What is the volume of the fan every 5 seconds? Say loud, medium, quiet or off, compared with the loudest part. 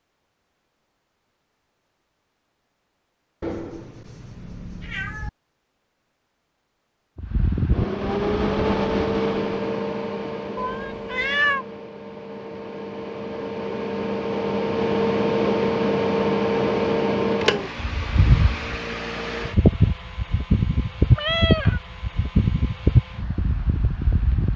off, loud, medium, loud, loud.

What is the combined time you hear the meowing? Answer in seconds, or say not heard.
4 s.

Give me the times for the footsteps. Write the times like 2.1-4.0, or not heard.
not heard.